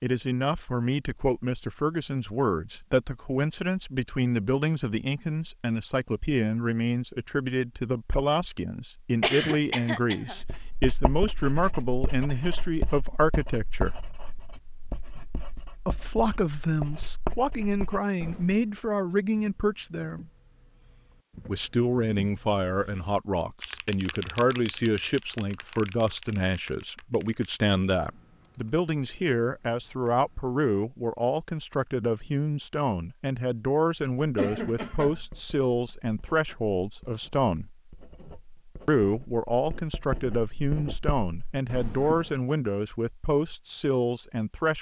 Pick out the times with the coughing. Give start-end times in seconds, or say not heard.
9.2-10.4, 34.4-35.2.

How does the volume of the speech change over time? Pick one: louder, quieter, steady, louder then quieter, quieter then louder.
steady.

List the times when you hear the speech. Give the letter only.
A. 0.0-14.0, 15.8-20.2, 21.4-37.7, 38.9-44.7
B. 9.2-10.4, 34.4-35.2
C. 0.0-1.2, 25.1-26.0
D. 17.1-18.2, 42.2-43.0
A.